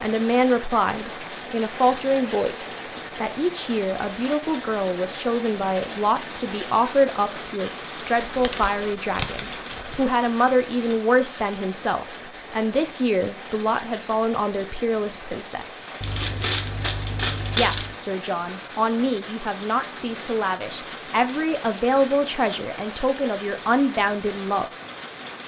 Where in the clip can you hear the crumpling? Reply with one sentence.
The crumpling can be heard from 8.2 to 10.0 s and from 16.0 to 17.9 s.